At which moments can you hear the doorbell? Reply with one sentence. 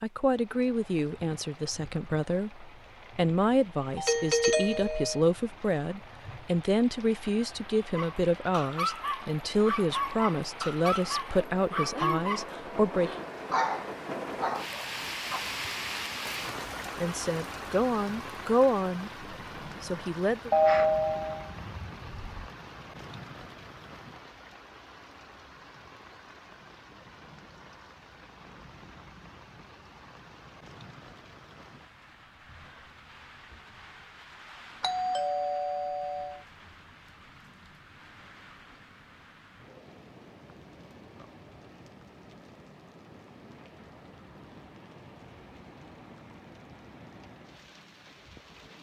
The doorbell can be heard from 4.0 to 5.2 s, from 20.5 to 22.5 s and from 34.8 to 36.4 s.